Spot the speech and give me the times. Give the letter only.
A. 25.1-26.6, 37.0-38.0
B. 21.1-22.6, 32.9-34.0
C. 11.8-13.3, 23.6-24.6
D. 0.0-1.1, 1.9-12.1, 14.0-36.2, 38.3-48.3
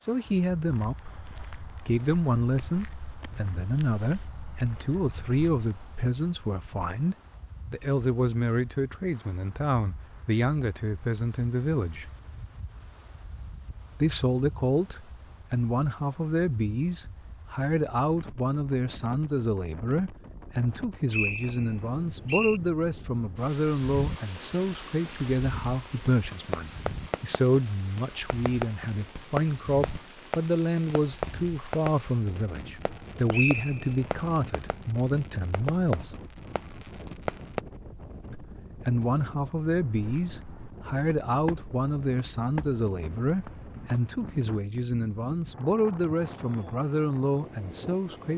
D.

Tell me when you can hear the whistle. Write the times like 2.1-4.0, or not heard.
21.1-22.6, 32.9-34.0.